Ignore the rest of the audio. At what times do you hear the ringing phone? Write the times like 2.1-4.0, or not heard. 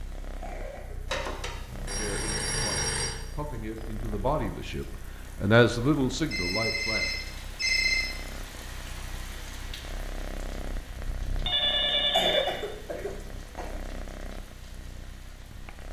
1.1-3.1, 6.3-8.1, 11.4-12.5.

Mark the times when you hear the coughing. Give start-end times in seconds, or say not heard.
0.2-1.0, 12.1-13.8.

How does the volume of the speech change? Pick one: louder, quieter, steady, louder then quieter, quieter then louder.
louder then quieter.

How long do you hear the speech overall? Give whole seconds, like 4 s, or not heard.
5 s.